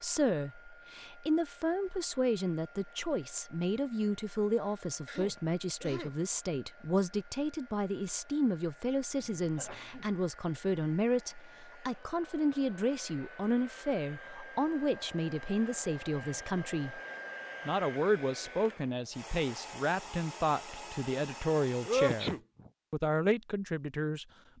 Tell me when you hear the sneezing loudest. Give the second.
22 s.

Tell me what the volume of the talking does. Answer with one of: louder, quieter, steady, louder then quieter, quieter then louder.
steady.